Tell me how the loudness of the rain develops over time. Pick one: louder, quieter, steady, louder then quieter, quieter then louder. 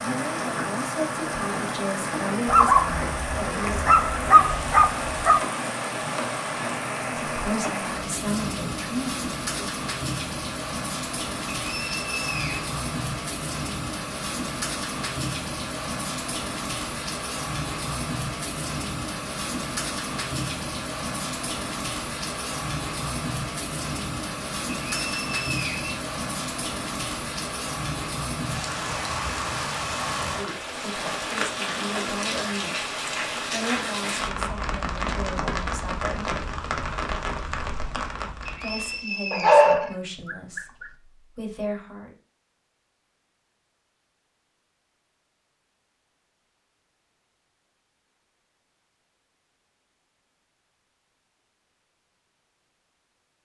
steady.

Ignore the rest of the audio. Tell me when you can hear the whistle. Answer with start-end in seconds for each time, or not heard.
11.7-12.7, 24.9-25.9, 38.5-40.0.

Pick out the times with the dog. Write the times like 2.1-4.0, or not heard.
2.5-5.4, 39.3-40.9.